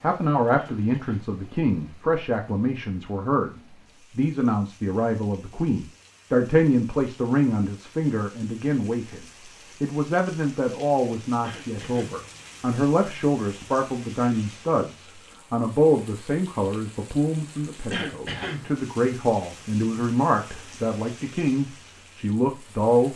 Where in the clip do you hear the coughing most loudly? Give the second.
18 s.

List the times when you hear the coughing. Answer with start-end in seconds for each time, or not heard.
0.6-1.3, 11.4-12.2, 17.9-18.6.